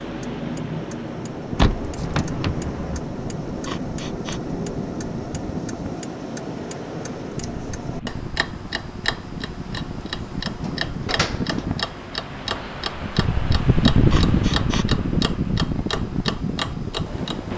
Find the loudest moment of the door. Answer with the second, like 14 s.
2 s.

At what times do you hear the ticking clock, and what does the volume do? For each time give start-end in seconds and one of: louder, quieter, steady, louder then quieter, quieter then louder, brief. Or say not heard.
0.0-17.5 steady.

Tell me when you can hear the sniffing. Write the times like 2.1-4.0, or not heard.
3.6-4.4, 14.1-14.8.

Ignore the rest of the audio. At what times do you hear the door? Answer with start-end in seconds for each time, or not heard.
1.6-3.0, 10.5-11.7.